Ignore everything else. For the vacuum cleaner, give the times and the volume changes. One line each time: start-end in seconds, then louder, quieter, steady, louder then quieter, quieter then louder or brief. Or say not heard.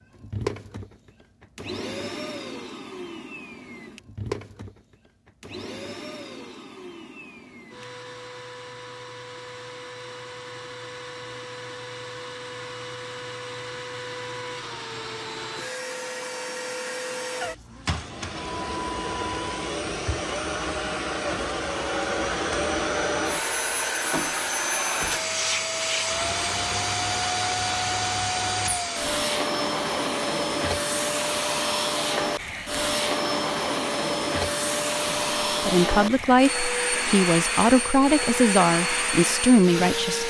0.0-40.2 louder.